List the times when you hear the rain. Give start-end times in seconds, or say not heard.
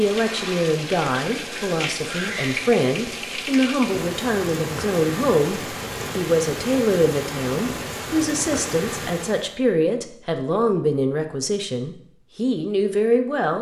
0.0-9.6.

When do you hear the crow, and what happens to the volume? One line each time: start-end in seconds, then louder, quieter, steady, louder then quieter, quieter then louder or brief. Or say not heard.
not heard.